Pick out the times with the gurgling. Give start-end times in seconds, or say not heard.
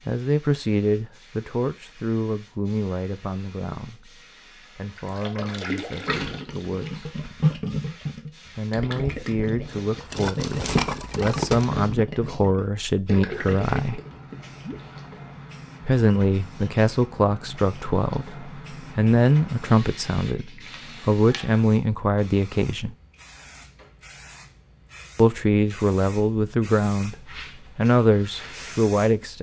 5.0-14.9.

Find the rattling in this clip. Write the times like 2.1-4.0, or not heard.
10.1-11.7.